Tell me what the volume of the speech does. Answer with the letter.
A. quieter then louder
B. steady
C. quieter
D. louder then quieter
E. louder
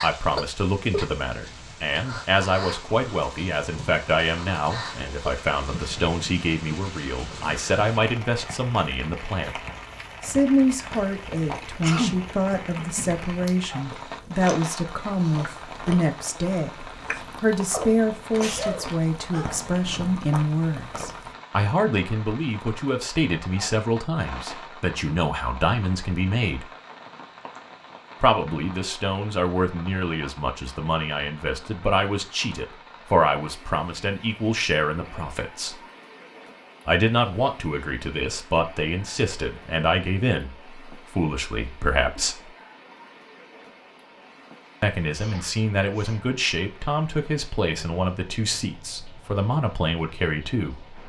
B.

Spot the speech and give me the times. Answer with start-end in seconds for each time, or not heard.
0.0-9.6, 10.2-26.6, 28.2-35.8, 36.9-42.5, 44.8-51.0.